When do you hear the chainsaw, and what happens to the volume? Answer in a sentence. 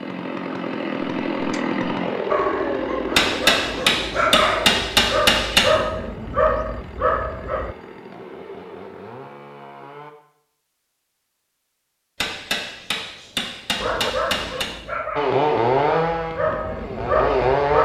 You can hear the chainsaw from 0.0 to 10.2 s, getting quieter; and briefly from 15.2 to 17.7 s.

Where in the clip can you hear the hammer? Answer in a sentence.
The hammer can be heard from 3.1 to 5.7 s and from 12.2 to 14.7 s.